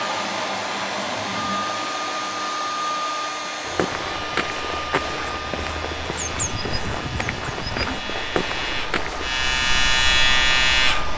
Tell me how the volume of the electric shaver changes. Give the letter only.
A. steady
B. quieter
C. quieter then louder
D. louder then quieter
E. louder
E.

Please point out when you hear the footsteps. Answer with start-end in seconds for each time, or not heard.
3.6-9.3.